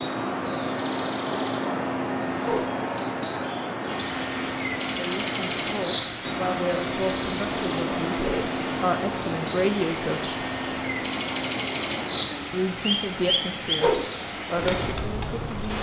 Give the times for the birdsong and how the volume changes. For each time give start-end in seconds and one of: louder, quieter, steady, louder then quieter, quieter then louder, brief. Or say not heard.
0.0-15.7 steady.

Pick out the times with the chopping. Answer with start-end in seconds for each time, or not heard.
not heard.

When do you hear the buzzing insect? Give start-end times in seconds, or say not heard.
not heard.